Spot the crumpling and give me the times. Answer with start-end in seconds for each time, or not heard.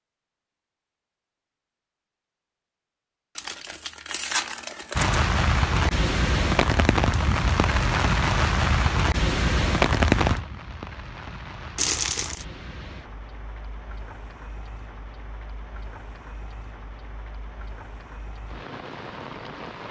3.4-5.2, 11.8-12.4.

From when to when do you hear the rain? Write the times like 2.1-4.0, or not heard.
5.0-19.8.